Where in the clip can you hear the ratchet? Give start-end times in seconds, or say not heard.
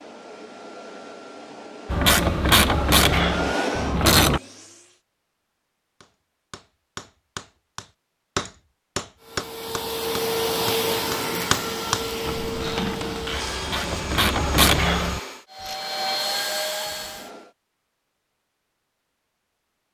1.9-4.4, 12.2-15.8.